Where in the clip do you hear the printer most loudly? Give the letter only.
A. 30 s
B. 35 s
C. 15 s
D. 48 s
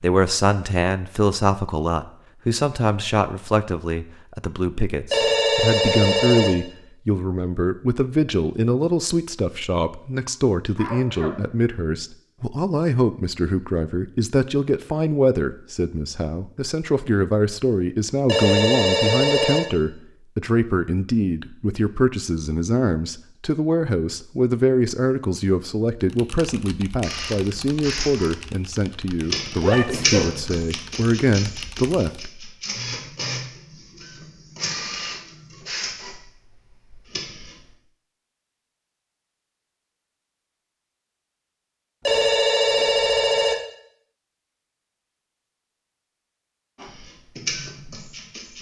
A.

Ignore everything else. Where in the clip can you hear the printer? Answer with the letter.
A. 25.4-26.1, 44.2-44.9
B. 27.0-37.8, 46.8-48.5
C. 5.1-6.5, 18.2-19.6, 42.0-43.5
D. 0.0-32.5
B.